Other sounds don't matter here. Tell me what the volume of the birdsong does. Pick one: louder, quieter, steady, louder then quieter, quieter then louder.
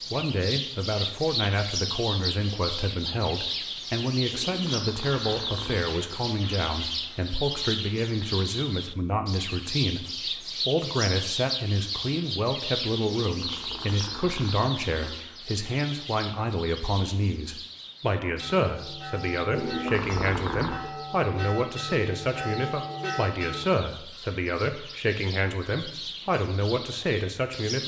quieter.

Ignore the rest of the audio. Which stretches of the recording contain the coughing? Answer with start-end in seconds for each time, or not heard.
not heard.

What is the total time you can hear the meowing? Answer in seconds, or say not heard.
5 s.